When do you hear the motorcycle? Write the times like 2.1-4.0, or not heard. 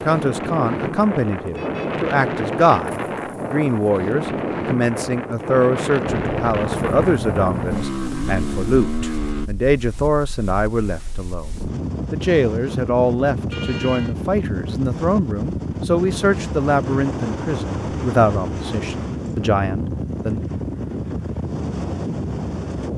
6.0-9.5.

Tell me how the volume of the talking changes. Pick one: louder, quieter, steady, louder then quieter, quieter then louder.
steady.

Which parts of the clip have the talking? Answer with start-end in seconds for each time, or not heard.
0.1-20.4.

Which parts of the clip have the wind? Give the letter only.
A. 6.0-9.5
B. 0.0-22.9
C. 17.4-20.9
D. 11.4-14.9
B.